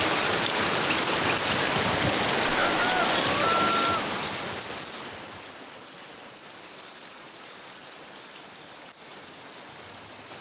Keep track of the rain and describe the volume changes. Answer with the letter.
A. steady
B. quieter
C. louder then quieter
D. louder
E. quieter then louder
B.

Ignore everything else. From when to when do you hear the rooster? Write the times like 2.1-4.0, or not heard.
2.5-4.0.